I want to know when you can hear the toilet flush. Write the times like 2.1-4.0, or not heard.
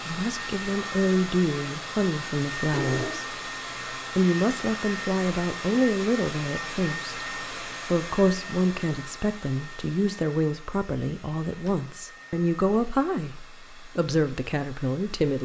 2.5-3.2.